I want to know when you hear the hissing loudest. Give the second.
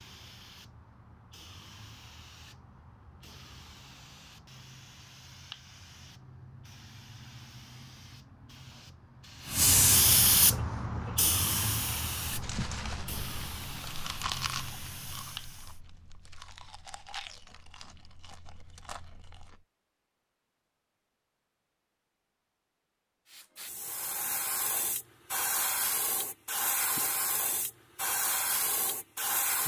10 s.